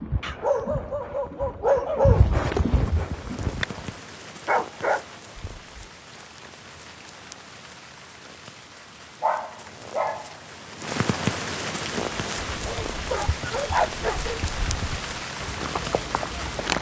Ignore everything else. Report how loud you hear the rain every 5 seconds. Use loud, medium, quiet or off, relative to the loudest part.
medium, quiet, loud, loud.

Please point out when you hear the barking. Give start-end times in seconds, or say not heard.
0.2-2.2, 4.5-5.8, 9.2-10.3, 12.7-14.4.